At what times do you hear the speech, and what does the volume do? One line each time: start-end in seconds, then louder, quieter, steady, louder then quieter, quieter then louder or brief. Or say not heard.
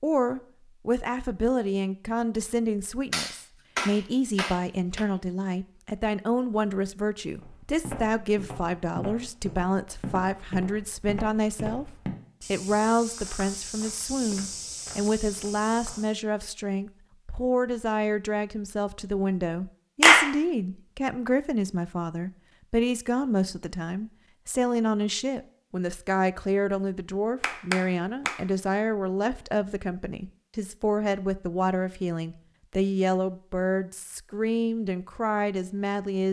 0.0-36.2 steady.